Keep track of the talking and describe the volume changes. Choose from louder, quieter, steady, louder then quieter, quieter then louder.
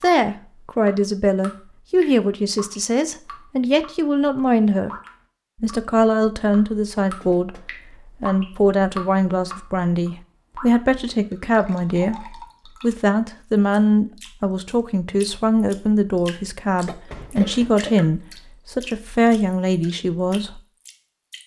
steady.